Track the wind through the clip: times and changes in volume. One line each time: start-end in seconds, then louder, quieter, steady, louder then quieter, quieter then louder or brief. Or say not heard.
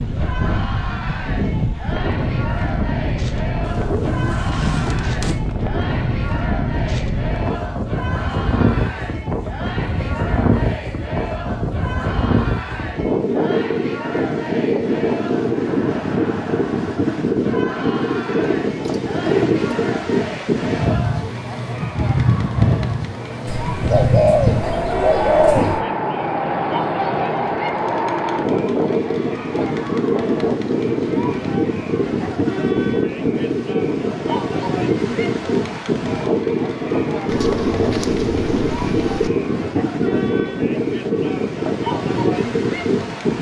0.0-43.3 steady.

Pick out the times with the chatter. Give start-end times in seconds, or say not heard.
0.1-43.3.